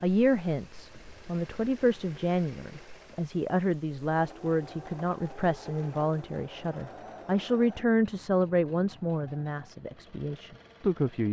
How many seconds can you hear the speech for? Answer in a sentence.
The speech can be heard for 11 seconds in total.